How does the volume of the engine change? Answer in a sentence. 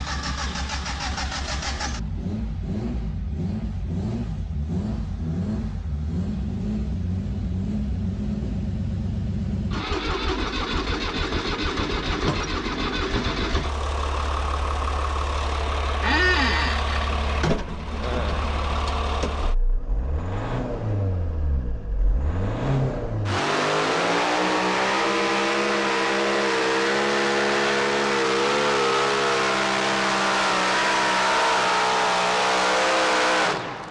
The loudness of the engine goes up.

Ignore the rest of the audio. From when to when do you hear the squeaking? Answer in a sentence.
You can hear the squeaking from 16.0 to 17.1 s.